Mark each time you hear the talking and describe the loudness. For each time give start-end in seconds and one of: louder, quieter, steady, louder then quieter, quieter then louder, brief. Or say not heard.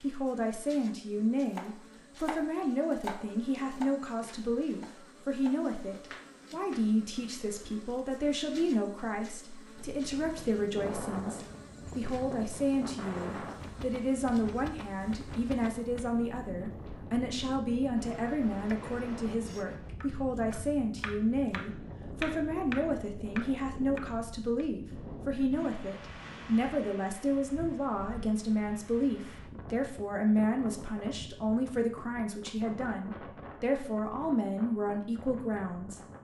0.0-36.0 steady.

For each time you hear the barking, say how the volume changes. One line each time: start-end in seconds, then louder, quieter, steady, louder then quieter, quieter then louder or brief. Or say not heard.
not heard.